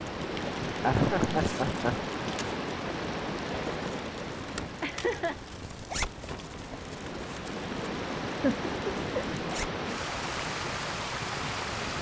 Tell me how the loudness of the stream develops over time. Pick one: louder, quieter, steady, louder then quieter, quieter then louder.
quieter then louder.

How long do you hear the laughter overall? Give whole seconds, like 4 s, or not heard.
3 s.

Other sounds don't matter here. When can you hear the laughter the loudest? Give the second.
1 s.